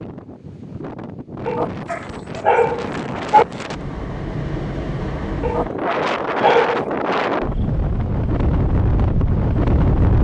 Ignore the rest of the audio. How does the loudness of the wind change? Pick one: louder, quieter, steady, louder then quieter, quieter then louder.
louder.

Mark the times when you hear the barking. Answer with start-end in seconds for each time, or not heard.
1.4-3.5, 5.4-6.9.